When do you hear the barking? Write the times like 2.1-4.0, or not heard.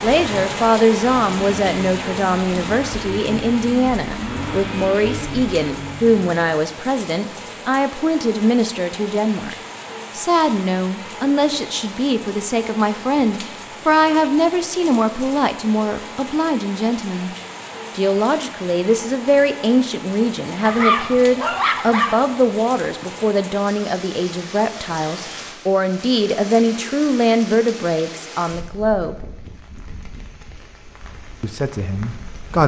20.6-22.2.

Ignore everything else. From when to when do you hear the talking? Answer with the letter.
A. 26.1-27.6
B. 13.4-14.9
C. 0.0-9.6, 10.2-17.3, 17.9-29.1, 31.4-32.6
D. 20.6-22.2
C.